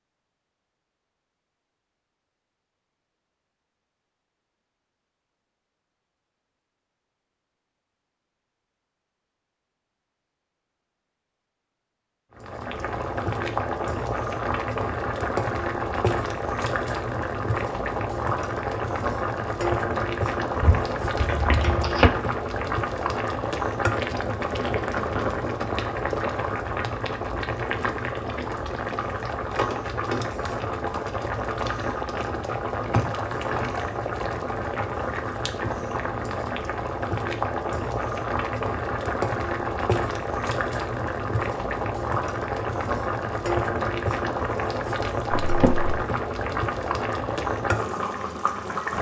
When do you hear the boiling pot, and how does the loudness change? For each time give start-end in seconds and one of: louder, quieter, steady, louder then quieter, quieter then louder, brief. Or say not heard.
12.3-48.9 steady.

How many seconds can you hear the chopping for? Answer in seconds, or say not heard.
not heard.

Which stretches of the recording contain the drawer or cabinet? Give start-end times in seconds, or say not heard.
20.6-22.1, 45.4-46.0.